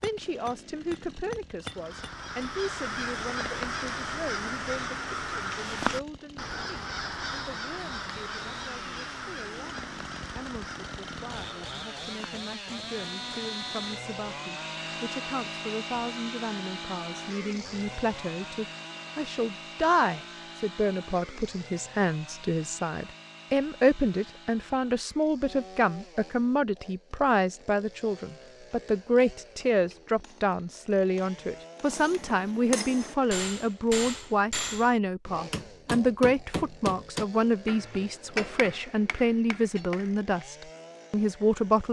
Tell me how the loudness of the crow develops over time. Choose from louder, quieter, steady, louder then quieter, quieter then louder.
quieter.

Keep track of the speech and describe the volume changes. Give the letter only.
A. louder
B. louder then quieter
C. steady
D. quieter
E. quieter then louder
A.